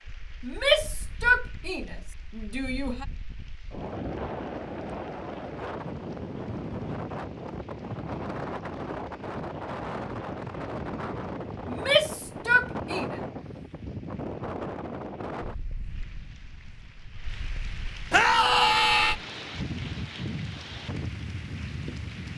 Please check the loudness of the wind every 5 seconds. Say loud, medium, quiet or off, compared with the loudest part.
medium, loud, loud, medium, loud.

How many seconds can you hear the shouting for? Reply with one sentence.
You can hear the shouting for 5 seconds altogether.